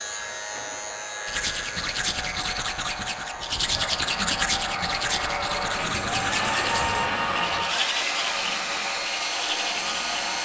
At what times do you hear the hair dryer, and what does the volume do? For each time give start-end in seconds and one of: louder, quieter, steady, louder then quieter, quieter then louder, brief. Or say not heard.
0.0-10.4 louder.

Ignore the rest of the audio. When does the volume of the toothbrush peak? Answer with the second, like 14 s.
4 s.